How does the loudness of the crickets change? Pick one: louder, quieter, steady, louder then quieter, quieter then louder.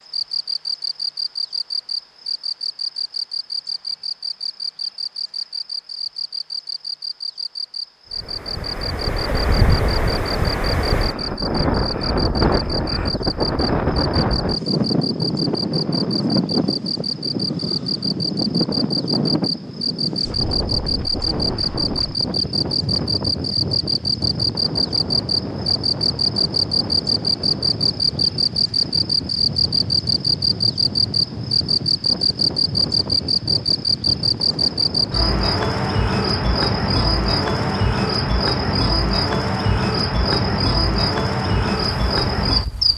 louder.